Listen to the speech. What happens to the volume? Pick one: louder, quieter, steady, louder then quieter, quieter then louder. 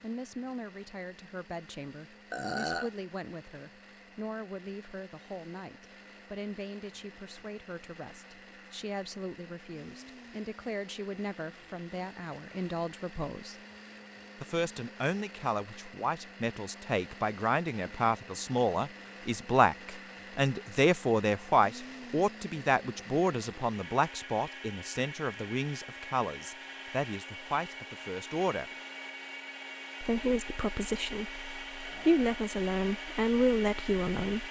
louder.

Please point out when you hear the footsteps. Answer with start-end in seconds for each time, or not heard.
not heard.